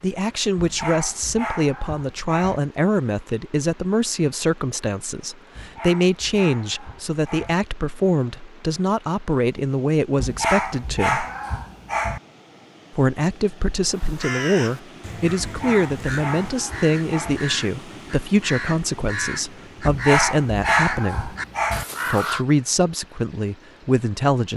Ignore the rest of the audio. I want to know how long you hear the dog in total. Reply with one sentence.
The dog can be heard for 10 seconds in total.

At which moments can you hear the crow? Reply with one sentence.
You can hear the crow from 13.9 to 22.4 s.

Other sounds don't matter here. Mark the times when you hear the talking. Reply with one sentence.
You can hear the talking from 0.0 to 11.2 s, from 12.9 to 21.4 s and from 22.1 to 24.5 s.